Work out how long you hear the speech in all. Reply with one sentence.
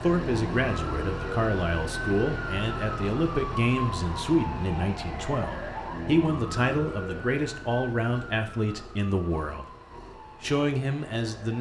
The speech can be heard for 11 seconds in total.